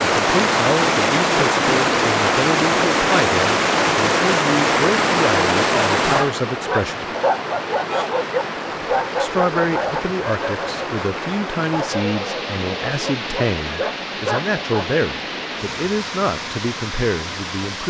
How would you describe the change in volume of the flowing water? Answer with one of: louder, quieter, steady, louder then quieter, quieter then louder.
quieter.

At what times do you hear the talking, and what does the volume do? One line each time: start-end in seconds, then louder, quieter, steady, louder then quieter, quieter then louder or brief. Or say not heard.
0.0-7.0 steady
9.2-17.8 steady.